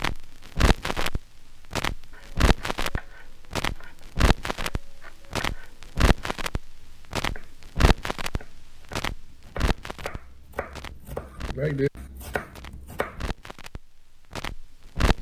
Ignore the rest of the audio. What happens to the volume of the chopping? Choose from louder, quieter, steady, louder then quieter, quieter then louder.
quieter then louder.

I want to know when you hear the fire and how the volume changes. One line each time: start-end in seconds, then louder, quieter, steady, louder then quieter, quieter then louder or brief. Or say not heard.
0.0-15.1 quieter.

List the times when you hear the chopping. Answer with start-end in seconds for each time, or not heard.
2.1-13.2.